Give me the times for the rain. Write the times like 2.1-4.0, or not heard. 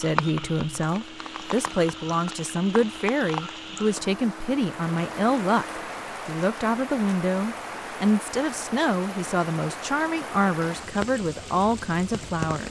0.0-12.6.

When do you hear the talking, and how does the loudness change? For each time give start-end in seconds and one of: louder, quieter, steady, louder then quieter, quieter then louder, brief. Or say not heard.
0.0-12.6 steady.